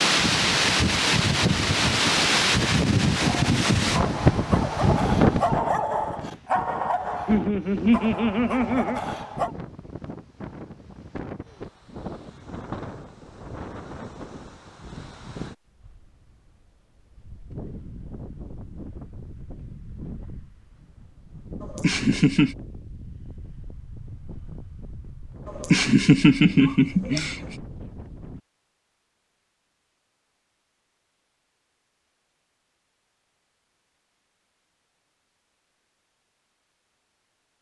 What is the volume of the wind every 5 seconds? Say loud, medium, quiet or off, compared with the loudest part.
loud, medium, quiet, quiet, quiet, quiet, off, off.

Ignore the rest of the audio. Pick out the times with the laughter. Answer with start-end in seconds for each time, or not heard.
7.2-9.0, 21.6-22.6, 25.6-27.4.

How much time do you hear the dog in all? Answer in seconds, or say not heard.
6 s.